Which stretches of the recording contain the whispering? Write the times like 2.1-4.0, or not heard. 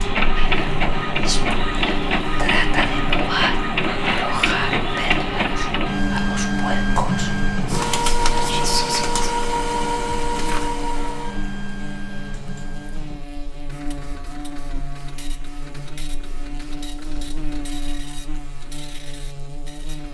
0.3-9.3.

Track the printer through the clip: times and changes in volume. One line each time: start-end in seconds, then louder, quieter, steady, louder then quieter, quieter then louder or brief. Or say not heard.
0.0-20.0 quieter.